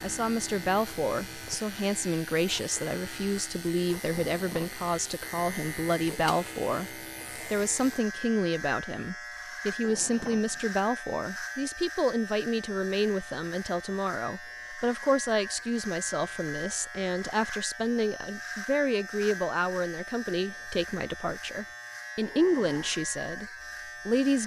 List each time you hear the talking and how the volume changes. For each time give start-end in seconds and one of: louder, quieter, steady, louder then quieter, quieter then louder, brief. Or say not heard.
0.0-24.4 steady.